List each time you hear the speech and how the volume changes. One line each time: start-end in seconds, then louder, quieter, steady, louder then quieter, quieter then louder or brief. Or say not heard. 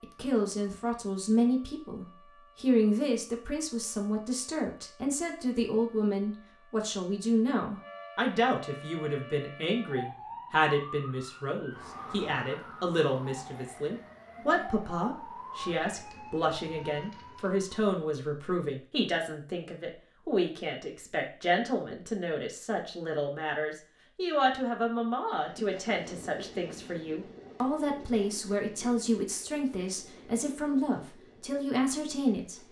0.0-32.6 steady.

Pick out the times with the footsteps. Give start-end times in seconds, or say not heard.
not heard.